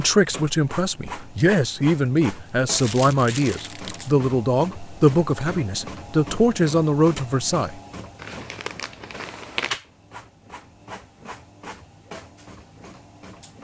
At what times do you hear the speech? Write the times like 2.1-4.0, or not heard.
0.0-7.8.